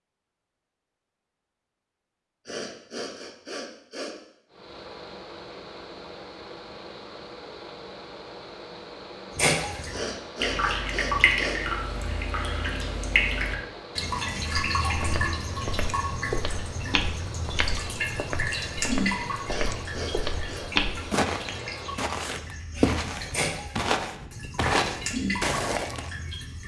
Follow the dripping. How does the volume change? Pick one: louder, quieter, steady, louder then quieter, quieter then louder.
quieter then louder.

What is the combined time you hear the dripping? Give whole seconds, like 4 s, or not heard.
17 s.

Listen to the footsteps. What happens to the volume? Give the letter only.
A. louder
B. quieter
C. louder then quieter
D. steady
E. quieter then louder
A.